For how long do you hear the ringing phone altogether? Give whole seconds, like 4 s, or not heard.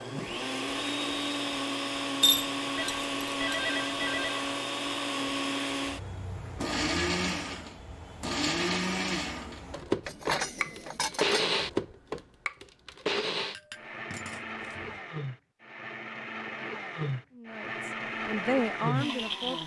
2 s.